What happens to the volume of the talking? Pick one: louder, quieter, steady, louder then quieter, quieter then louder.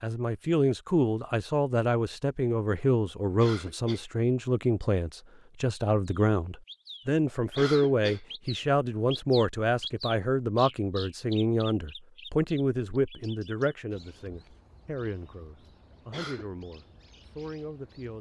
quieter.